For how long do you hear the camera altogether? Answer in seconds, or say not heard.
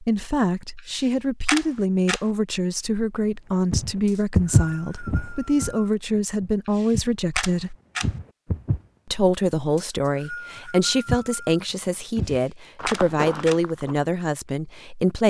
4 s.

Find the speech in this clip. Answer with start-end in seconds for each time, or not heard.
0.0-7.8, 9.1-15.2.